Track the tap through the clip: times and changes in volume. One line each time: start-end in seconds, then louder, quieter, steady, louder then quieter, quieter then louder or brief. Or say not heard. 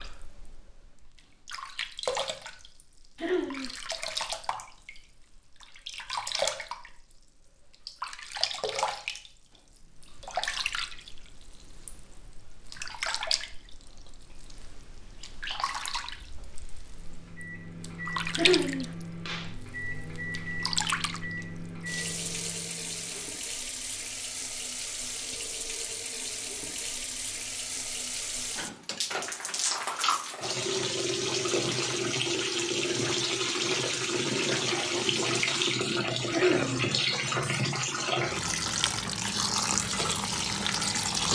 0.0-41.2 louder.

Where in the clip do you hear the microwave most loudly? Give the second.
20 s.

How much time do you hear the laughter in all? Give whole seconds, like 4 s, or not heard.
2 s.